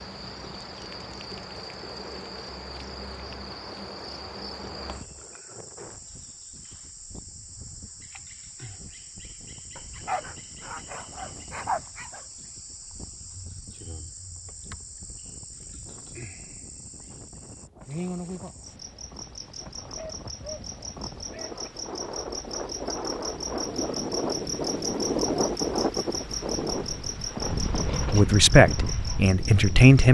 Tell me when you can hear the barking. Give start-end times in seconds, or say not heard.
9.8-12.2, 19.8-21.7.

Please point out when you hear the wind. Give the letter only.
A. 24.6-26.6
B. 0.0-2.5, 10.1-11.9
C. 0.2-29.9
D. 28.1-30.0
C.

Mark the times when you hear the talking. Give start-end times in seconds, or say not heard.
28.1-30.0.